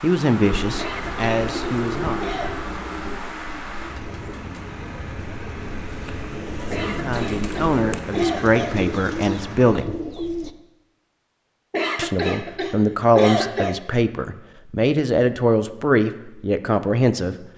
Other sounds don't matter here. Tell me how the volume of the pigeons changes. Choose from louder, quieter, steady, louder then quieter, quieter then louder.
quieter then louder.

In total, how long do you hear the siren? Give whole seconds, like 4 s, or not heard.
not heard.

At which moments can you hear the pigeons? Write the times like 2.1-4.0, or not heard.
0.5-10.5.